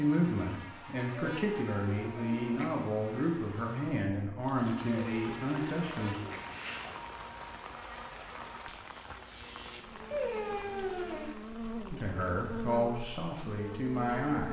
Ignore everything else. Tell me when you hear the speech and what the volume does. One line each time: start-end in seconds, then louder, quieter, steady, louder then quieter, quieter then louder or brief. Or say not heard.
0.0-6.2 steady
11.9-14.4 brief.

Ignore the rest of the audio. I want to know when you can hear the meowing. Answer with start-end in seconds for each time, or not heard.
1.1-2.8, 4.8-6.9, 10.1-11.3.